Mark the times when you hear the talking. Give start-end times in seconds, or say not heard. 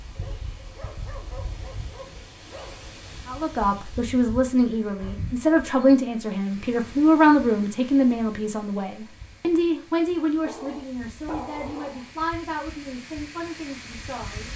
3.2-14.5.